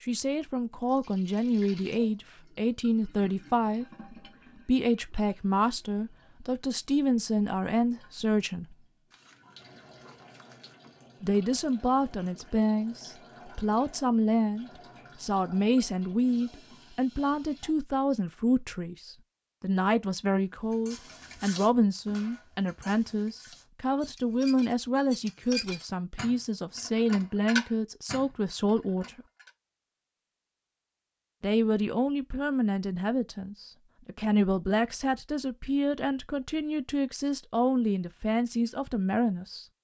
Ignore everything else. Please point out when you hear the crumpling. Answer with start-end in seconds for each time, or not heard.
9.1-10.8.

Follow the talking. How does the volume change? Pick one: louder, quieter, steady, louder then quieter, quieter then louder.
steady.